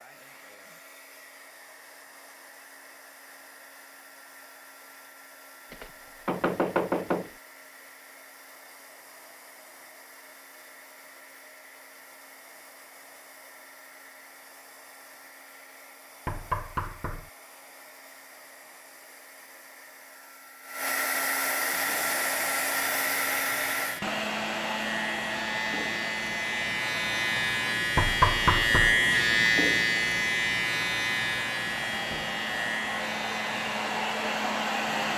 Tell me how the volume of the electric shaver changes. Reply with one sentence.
The volume of the electric shaver goes up, then down.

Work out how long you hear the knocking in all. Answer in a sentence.
You can hear the knocking for 4 seconds altogether.